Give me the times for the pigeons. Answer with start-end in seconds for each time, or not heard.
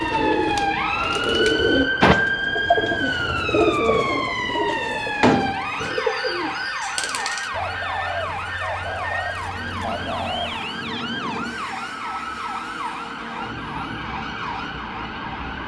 0.0-10.7.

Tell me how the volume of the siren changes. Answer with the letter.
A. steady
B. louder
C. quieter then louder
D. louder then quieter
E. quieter
E.